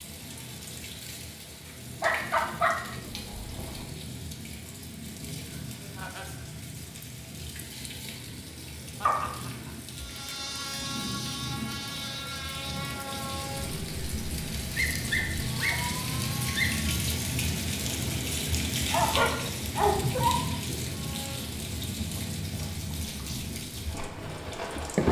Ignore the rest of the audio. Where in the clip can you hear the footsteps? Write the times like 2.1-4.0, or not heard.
not heard.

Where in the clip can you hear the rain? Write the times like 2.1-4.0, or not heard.
0.0-25.0.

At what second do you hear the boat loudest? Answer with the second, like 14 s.
25 s.